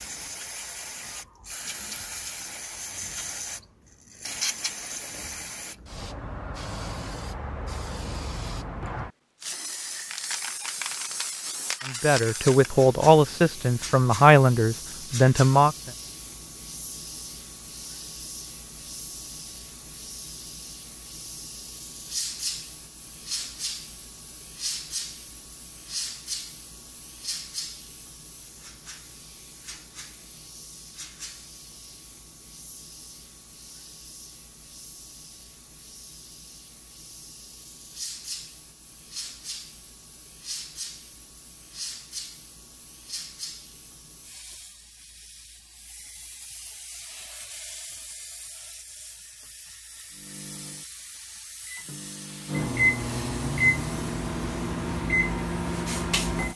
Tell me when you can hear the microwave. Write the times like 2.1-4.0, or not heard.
50.1-56.5.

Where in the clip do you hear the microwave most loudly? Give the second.
53 s.